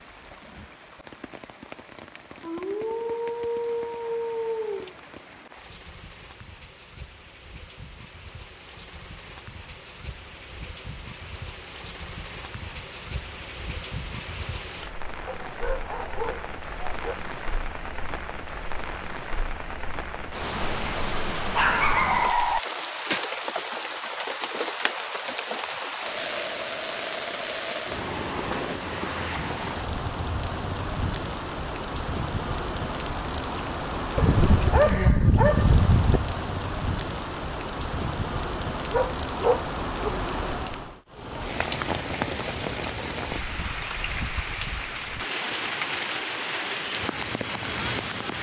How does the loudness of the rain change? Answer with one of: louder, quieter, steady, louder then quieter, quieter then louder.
louder.